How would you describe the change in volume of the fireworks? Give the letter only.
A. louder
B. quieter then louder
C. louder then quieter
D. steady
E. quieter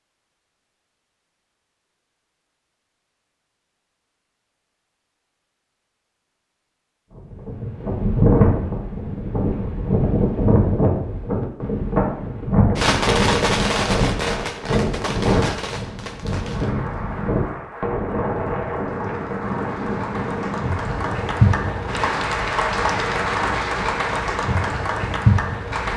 E.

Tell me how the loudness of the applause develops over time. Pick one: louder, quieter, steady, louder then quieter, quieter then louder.
louder.